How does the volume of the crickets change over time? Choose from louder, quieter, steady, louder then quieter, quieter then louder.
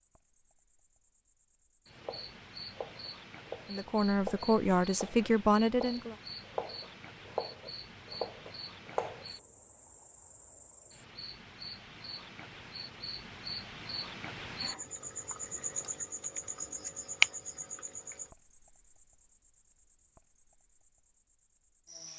louder then quieter.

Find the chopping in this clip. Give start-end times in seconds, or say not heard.
2.0-9.2.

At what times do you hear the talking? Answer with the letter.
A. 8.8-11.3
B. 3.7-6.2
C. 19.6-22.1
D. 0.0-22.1
B.